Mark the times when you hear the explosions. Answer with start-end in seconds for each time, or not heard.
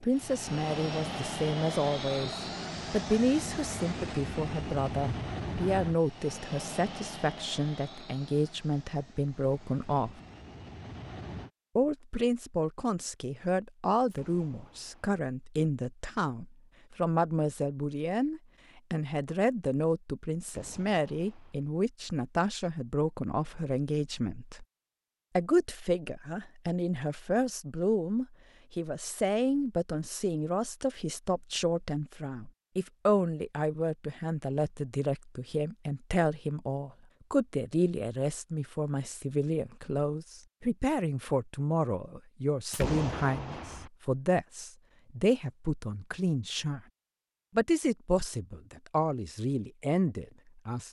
14.1-15.2, 20.4-21.6, 42.7-43.9.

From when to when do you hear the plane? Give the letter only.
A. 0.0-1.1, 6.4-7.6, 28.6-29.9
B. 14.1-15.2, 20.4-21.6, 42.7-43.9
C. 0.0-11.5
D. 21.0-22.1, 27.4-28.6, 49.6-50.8
C.